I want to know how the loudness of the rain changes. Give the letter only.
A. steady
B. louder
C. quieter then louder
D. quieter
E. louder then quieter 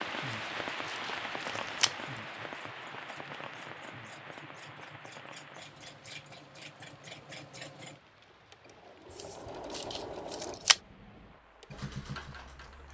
D.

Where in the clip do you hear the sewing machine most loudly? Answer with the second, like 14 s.
10 s.